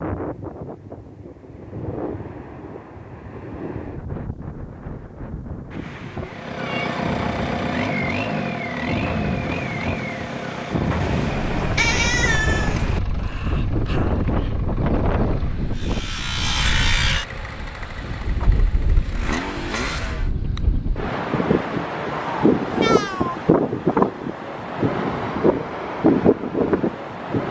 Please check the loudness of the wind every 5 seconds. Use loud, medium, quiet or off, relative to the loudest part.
quiet, medium, medium, medium, loud, loud.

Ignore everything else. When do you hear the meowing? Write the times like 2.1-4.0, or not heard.
6.1-7.0, 11.0-13.0, 22.6-23.4.